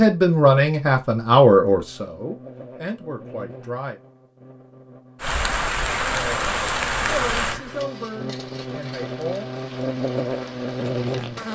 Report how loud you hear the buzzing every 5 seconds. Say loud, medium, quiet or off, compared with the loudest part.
quiet, medium, loud.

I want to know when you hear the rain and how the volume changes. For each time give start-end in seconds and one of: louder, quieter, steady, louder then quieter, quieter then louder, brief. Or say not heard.
5.2-11.5 quieter.